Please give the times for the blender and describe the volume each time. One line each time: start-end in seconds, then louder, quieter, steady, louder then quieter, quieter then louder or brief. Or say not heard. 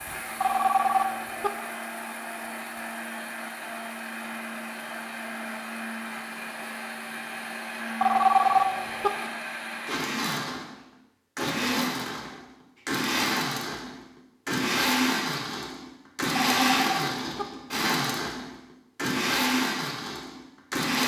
0.0-21.0 louder.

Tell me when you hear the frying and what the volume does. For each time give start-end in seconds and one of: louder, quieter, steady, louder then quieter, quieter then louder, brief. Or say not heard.
not heard.